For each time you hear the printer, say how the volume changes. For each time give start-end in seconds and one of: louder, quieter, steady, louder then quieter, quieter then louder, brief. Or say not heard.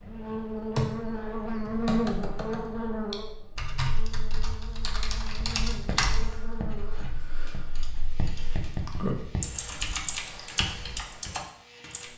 not heard.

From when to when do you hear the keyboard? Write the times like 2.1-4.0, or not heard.
0.2-0.9, 1.6-12.1.